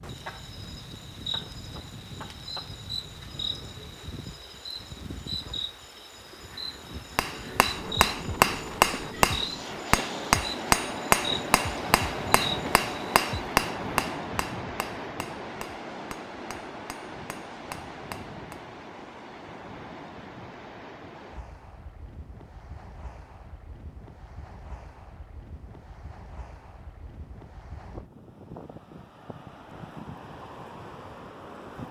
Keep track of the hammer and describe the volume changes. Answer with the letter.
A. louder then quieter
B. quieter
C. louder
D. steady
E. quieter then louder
B.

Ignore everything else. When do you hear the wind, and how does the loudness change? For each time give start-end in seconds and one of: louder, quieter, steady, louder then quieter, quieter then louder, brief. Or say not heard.
0.0-31.8 louder then quieter.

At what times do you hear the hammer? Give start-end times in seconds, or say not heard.
7.0-18.6.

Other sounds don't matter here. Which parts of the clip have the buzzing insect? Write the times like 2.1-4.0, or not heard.
0.0-13.2.